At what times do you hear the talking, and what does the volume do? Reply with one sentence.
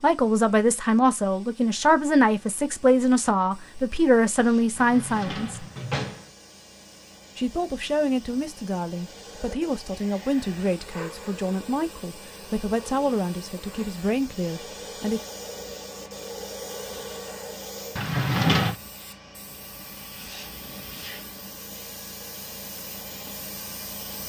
The talking can be heard from 0.0 to 5.7 s, at a steady volume; and from 7.3 to 15.2 s, at a steady volume.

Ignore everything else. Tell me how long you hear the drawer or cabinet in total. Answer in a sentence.
You can hear the drawer or cabinet for 2 seconds altogether.